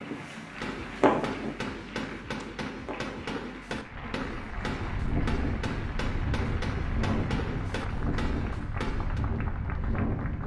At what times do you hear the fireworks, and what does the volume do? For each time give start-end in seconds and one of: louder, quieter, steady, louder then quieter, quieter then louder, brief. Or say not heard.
0.5-9.2 steady.